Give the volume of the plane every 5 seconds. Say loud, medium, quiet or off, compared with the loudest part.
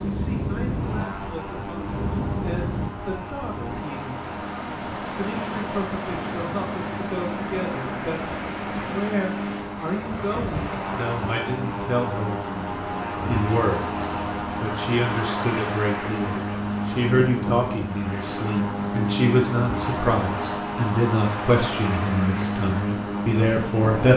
medium, medium, loud, loud, loud.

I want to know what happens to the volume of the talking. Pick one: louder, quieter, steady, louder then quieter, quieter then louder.
louder.